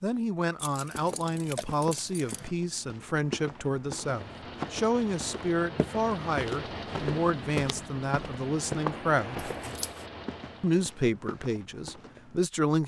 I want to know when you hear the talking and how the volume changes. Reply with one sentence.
The talking can be heard from 0.0 to 9.5 s, at a steady volume; and briefly from 10.6 to 12.8 s.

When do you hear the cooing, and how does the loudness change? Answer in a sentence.
The cooing can't be heard in this clip.